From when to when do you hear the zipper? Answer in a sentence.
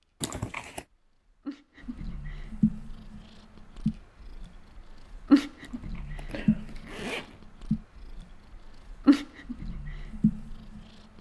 The zipper can be heard from 0.2 to 0.8 s and from 5.6 to 7.4 s.